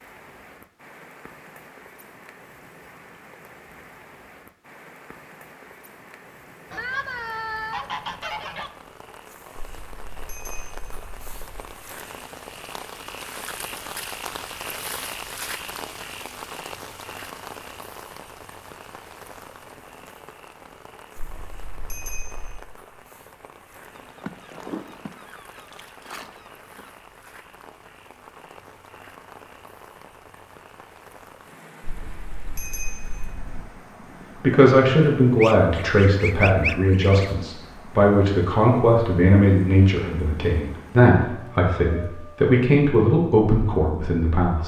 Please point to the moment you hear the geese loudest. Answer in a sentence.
The loudest moment of the geese is at 37 seconds.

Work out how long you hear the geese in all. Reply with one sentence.
You can hear the geese for 7 seconds altogether.